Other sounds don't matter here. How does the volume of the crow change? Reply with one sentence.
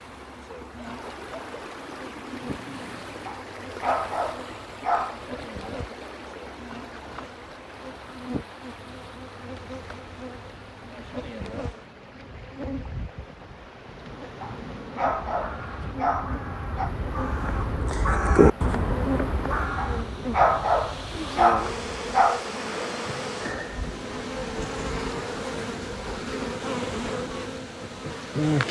The volume of the crow goes up, then down.